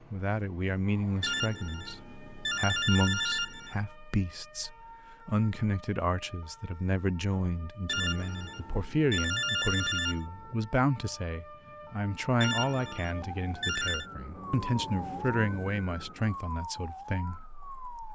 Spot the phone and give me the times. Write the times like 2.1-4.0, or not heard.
1.2-3.8, 7.8-10.2, 12.4-14.1.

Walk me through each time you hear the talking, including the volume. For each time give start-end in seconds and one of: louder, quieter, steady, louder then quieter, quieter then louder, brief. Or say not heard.
0.1-18.0 steady.